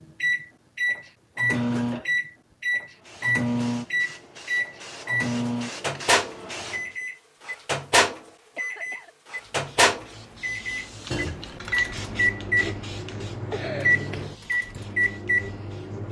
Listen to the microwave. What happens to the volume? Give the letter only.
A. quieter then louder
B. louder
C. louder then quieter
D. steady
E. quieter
D.